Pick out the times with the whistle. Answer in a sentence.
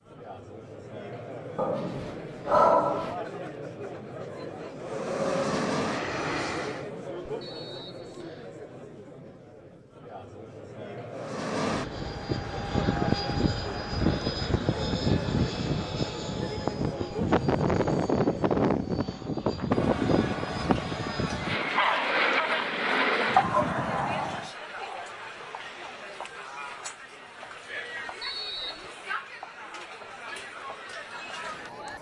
You can hear the whistle from 7.4 to 8.6 s and from 28.2 to 28.9 s.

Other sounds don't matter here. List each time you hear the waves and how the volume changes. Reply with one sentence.
The waves can't be heard in this clip.